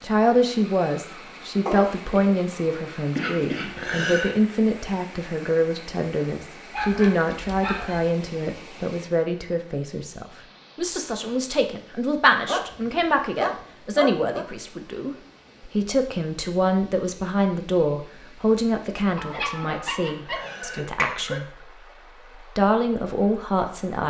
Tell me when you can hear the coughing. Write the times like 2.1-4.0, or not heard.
3.1-4.3, 19.6-21.4.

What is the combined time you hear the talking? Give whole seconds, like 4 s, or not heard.
23 s.